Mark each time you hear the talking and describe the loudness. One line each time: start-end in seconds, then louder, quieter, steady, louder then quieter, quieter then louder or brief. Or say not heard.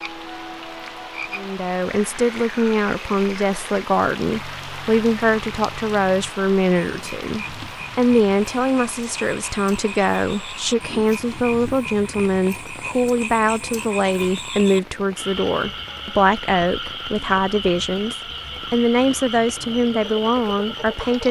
1.4-21.2 steady.